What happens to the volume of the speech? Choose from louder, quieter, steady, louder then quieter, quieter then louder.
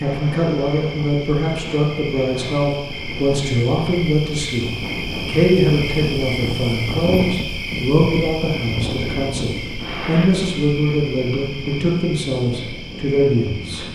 steady.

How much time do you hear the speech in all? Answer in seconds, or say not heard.
13 s.